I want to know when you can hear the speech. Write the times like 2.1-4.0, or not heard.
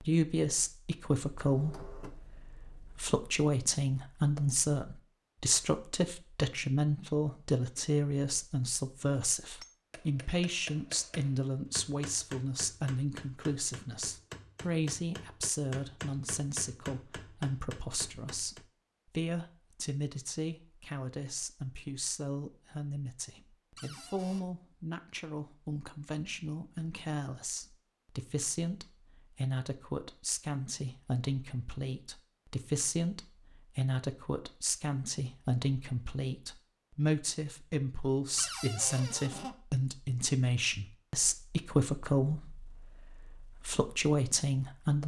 0.0-45.0.